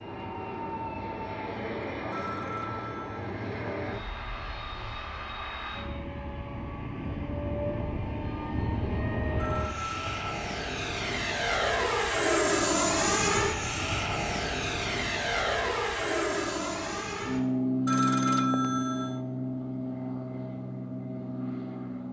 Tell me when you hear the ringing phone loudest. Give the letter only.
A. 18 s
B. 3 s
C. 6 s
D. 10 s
A.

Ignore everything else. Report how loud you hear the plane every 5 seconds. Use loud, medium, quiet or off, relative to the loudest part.
medium, medium, loud, loud, medium.